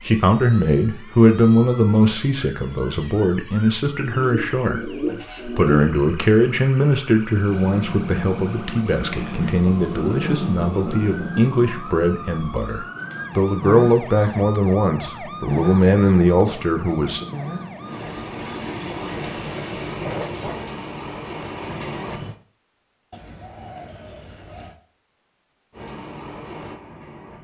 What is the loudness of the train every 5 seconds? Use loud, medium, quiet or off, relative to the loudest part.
off, loud, loud, loud, loud, medium.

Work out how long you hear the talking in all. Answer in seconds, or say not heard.
17 s.